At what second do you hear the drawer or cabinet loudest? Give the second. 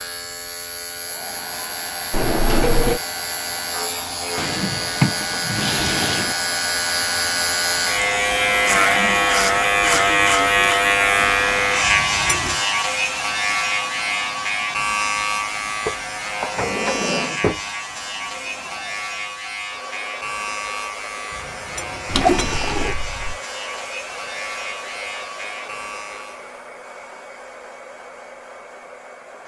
5 s.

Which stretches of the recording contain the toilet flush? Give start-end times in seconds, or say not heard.
2.1-3.0, 11.8-12.6, 21.8-22.9.